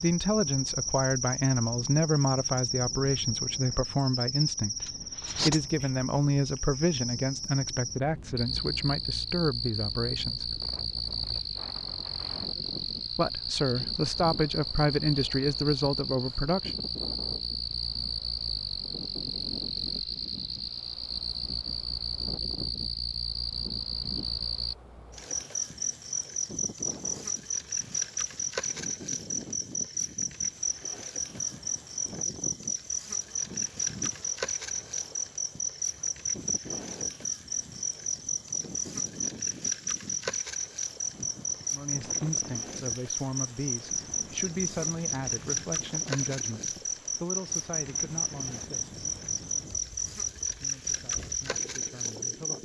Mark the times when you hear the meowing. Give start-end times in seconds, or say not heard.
not heard.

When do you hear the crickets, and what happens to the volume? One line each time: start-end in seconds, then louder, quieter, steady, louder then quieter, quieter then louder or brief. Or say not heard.
0.0-52.6 steady.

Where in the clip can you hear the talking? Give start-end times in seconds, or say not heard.
0.0-10.6, 13.2-16.7, 41.7-48.9, 50.5-52.6.